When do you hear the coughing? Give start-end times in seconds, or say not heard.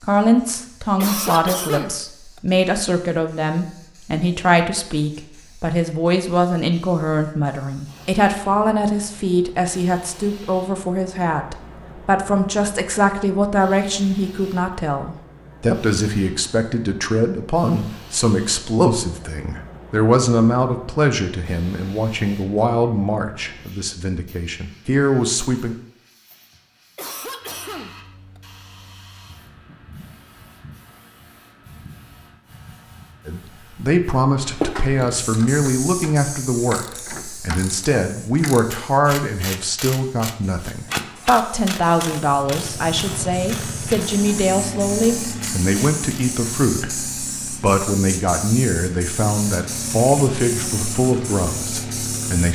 0.6-2.4, 26.6-28.4.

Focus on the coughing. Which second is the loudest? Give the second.
1 s.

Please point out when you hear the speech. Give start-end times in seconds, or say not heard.
0.0-25.8, 33.2-47.0, 47.6-52.5.